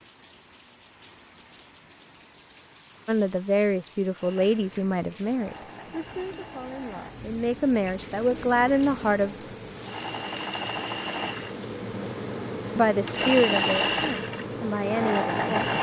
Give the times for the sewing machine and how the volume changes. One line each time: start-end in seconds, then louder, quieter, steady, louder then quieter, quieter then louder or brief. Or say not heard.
4.2-15.7 louder.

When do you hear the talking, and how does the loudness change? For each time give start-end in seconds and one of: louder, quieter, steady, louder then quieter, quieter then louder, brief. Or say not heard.
3.0-9.3 quieter then louder
12.8-15.7 brief.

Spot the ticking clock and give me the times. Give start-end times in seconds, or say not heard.
not heard.